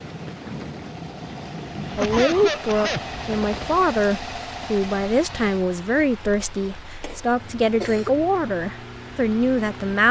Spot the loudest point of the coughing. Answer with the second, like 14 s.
2 s.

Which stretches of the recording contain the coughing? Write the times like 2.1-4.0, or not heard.
1.9-3.0, 7.0-8.2.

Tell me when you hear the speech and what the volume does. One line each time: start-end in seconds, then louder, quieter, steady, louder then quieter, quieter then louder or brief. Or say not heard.
1.9-10.0 steady.